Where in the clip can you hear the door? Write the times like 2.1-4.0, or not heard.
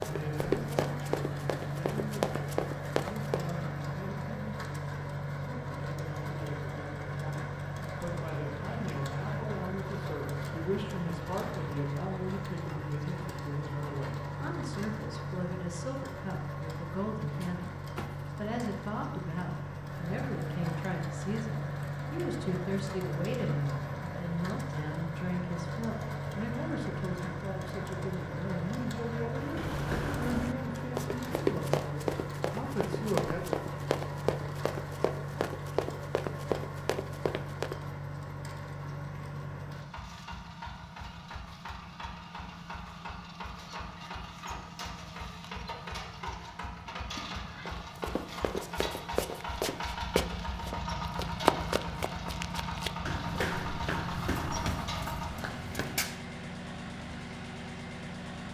17.2-18.4, 47.1-47.8.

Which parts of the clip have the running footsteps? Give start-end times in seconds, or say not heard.
0.0-3.5, 29.3-37.8, 47.6-56.2.